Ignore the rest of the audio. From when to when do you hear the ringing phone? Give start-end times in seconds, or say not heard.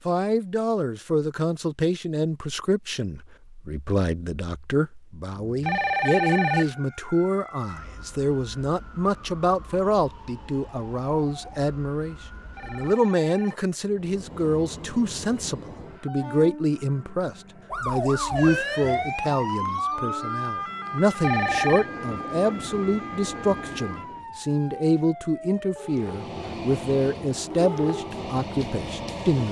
5.6-6.8, 12.6-13.7, 21.2-21.9.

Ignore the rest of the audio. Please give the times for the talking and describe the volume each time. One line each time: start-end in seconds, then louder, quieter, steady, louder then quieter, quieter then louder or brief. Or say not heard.
0.1-29.4 steady.